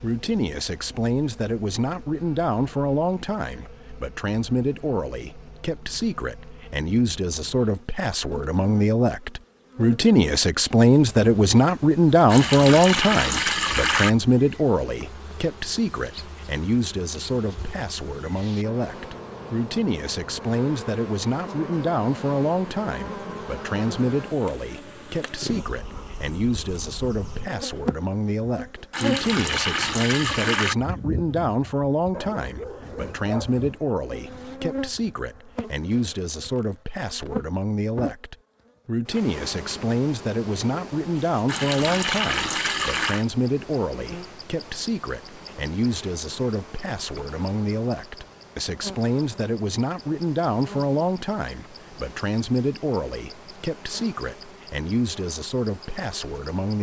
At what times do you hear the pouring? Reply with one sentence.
The pouring can be heard from 12.3 to 14.1 s, from 28.9 to 30.8 s and from 41.5 to 43.2 s.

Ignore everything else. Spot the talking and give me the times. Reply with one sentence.
The talking can be heard from 0.0 to 56.7 s.